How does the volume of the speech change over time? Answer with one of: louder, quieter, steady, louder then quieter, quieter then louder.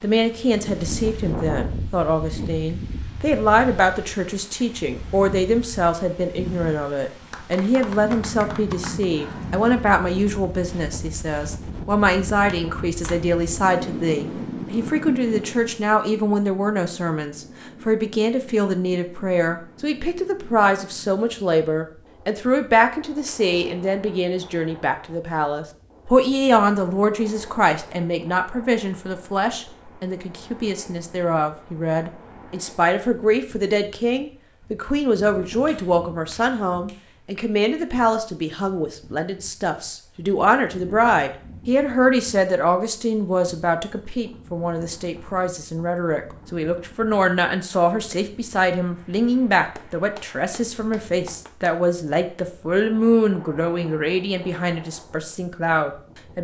steady.